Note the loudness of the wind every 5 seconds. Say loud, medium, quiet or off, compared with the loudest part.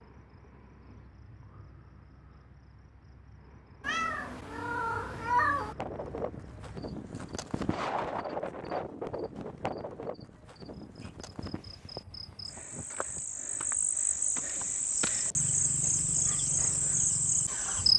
off, loud, medium, quiet.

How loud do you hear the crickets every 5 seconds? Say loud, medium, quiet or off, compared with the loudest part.
quiet, quiet, medium, loud.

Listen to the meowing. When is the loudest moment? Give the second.
5 s.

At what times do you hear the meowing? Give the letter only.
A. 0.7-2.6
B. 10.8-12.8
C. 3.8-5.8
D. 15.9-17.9
C.